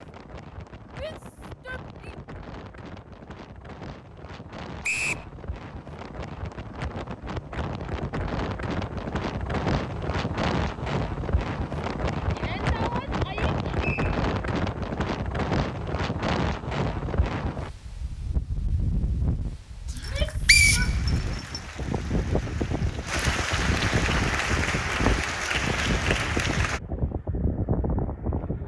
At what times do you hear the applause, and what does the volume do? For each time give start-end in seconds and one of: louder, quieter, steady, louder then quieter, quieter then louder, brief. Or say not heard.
20.0-26.8 louder.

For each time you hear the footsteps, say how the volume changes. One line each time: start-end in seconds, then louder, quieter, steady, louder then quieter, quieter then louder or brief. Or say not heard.
not heard.